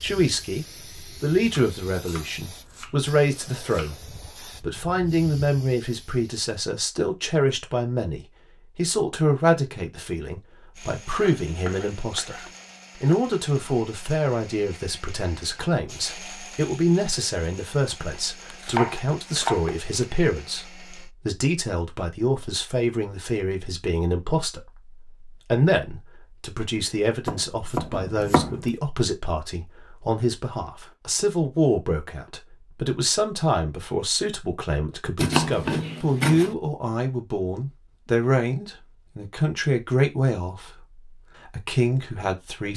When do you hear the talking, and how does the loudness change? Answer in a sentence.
The talking can be heard from 0.0 to 42.7 s, at a steady volume.